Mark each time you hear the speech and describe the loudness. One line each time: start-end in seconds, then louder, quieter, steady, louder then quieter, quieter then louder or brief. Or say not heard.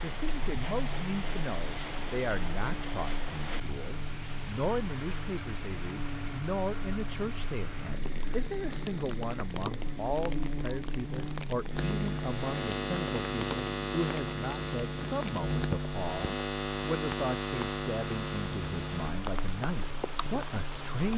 0.0-21.1 steady.